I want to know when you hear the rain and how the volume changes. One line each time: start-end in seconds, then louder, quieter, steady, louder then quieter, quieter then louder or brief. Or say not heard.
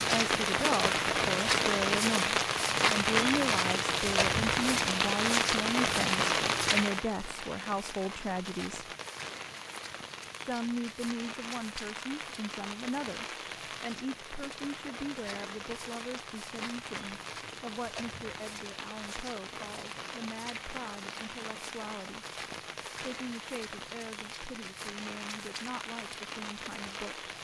0.0-27.4 quieter.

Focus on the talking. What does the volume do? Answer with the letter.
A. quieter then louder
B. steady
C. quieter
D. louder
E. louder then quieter
C.